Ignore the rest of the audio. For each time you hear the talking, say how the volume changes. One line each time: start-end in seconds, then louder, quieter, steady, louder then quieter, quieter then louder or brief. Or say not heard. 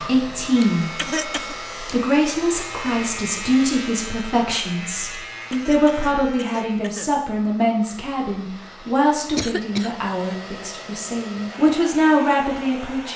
0.0-13.1 steady.